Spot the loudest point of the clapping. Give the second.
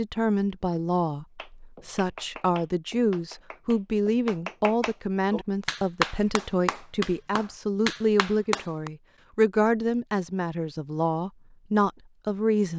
6 s.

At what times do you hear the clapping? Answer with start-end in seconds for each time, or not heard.
1.4-8.9.